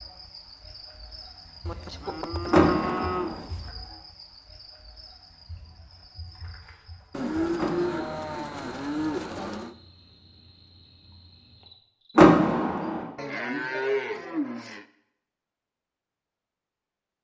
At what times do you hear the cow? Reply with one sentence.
The cow can be heard from 1.6 to 3.7 s, from 7.1 to 9.8 s and from 13.2 to 14.8 s.